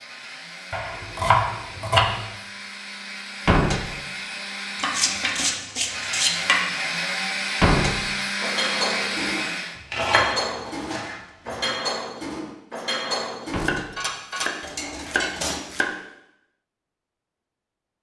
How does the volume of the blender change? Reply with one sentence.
The loudness of the blender goes up.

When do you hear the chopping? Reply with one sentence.
You can hear the chopping from 0.7 to 2.0 s, from 4.8 to 6.7 s, from 9.9 to 11.7 s and from 13.6 to 15.9 s.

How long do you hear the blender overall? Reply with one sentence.
The blender can be heard for 10 seconds in total.